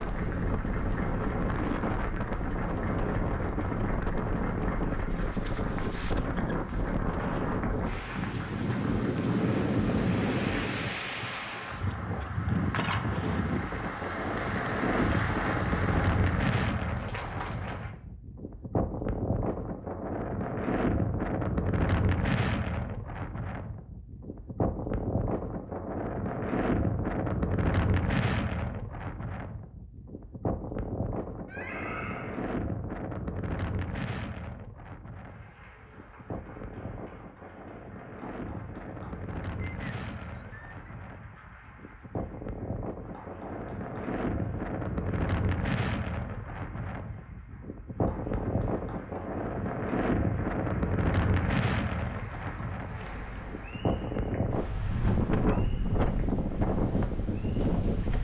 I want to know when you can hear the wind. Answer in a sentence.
The wind can be heard from 0.0 to 58.1 s.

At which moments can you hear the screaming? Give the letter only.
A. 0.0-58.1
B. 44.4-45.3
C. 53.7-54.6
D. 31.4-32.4
D.